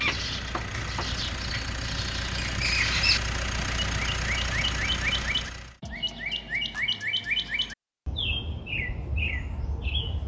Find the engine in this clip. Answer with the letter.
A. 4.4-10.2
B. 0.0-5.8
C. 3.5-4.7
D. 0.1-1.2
B.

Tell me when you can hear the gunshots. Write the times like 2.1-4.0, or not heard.
0.1-1.2.